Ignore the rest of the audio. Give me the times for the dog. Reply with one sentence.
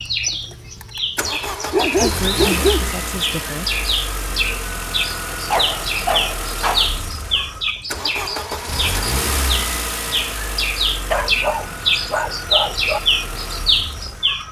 You can hear the dog from 1.7 to 2.9 s, from 5.5 to 6.9 s and from 11.1 to 13.0 s.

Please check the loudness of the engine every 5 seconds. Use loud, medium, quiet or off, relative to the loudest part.
loud, loud, medium.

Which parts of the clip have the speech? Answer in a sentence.
You can hear the speech from 2.0 to 3.6 s.